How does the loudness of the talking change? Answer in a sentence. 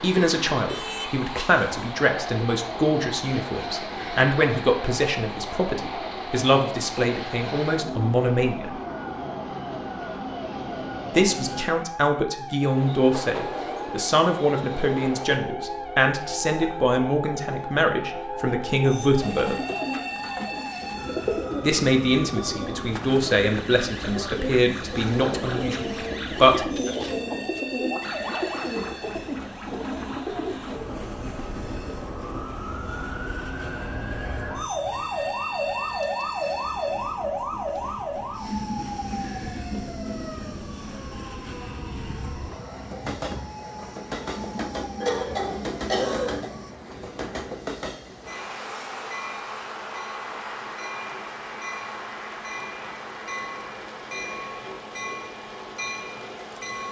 The volume of the talking stays about the same.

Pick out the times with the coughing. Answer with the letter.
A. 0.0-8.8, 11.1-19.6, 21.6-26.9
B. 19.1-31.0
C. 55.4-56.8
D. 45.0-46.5
D.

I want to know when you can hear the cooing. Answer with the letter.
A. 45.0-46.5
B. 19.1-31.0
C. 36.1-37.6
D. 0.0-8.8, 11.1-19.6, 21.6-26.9
B.